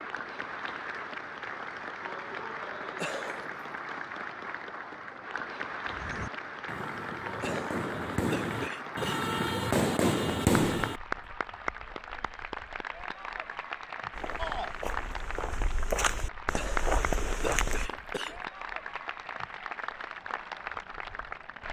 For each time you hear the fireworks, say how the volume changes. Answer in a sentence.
You can hear the fireworks from 5.8 to 11.0 s, getting louder.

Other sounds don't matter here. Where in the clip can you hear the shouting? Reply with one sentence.
The shouting can be heard from 14.3 to 14.8 s.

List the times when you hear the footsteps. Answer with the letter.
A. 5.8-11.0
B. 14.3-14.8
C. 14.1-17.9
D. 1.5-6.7
C.